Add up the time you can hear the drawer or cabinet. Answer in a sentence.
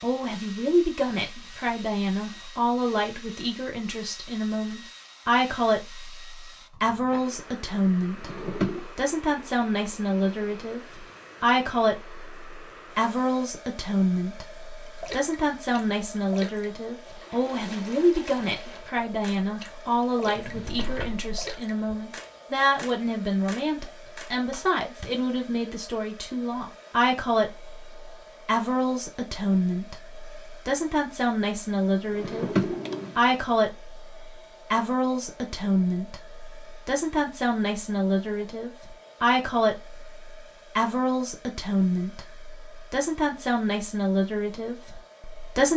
You can hear the drawer or cabinet for 3 seconds altogether.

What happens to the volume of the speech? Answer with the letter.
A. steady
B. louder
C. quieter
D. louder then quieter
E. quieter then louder
A.